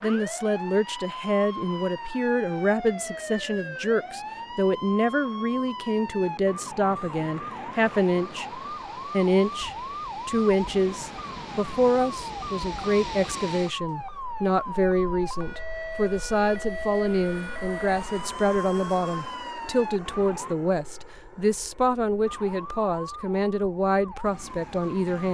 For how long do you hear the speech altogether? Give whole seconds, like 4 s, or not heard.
25 s.